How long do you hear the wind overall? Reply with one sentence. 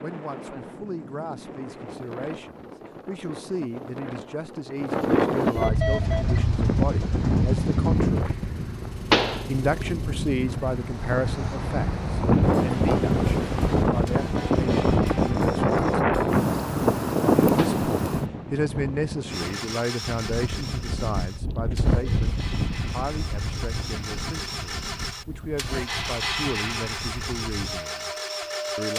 You can hear the wind for 29 seconds altogether.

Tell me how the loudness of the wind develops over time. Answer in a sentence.
The volume of the wind goes up, then down.